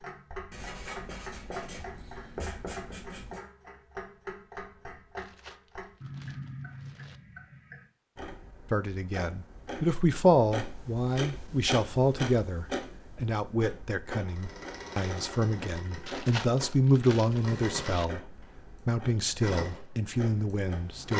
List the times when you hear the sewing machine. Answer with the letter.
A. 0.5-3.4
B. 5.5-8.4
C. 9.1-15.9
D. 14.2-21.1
D.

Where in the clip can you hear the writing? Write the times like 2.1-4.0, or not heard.
0.5-3.4.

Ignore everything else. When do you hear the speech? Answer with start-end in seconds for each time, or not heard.
8.7-21.1.